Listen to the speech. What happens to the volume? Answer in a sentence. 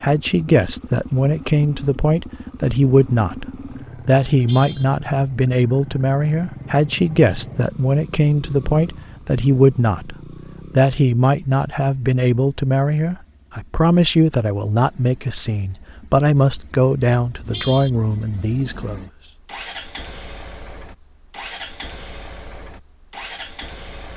The loudness of the speech stays about the same.